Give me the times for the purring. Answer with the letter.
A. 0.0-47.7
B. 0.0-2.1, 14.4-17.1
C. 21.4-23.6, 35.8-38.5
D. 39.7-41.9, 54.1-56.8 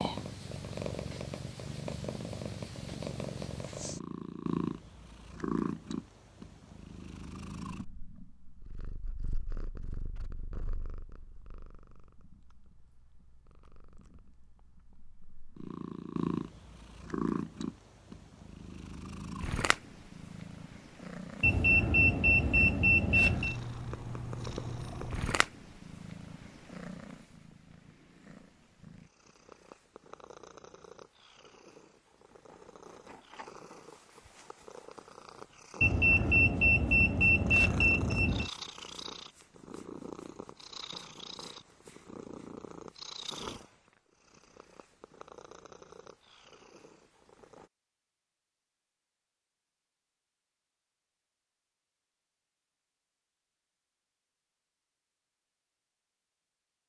A.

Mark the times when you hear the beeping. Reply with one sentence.
The beeping can be heard from 21.4 to 23.6 s and from 35.8 to 38.5 s.